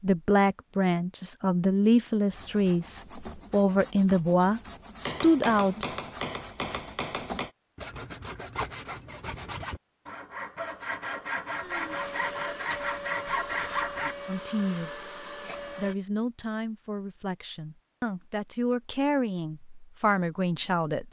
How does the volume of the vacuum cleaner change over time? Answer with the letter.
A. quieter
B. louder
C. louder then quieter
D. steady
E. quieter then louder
D.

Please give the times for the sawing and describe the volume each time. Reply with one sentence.
The sawing can be heard from 2.2 to 14.2 s, getting louder.